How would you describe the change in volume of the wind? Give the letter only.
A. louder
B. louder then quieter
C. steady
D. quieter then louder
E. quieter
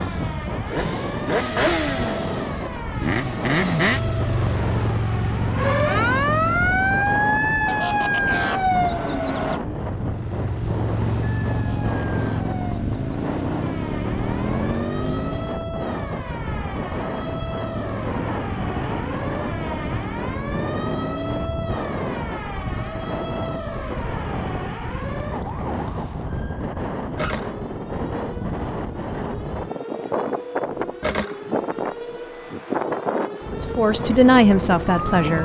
C.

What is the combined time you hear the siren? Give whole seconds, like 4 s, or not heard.
34 s.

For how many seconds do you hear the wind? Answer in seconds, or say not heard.
35 s.